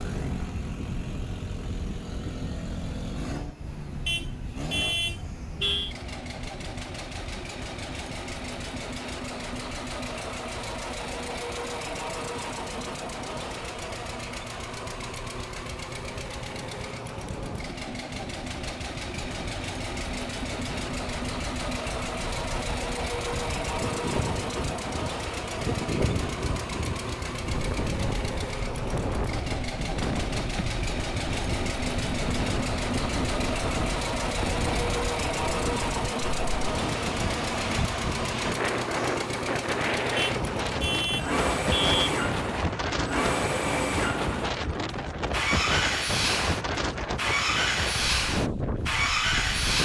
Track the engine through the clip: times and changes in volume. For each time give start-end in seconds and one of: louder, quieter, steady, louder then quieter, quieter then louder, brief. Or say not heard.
0.0-49.8 louder.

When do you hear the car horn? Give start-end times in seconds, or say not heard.
4.0-6.0, 40.1-42.0.